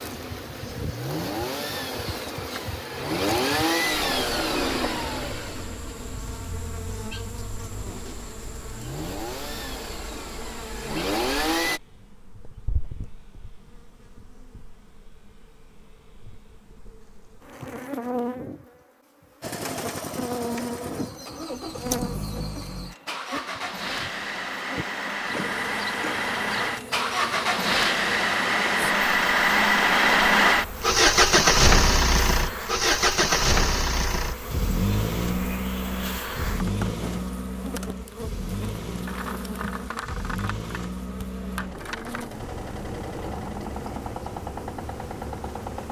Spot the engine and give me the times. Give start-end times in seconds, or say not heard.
0.0-11.8, 19.4-45.8.